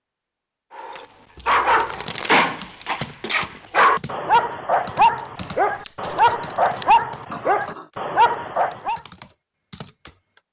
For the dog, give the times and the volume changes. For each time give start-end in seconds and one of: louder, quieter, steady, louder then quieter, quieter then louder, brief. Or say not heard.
0.8-9.0 steady.